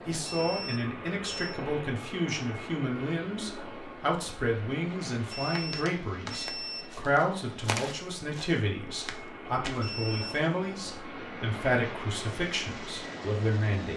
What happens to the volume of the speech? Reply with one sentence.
The volume of the speech stays about the same.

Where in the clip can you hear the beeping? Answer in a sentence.
You can hear the beeping from 0.2 to 1.6 s, from 5.3 to 7.0 s and from 9.8 to 10.4 s.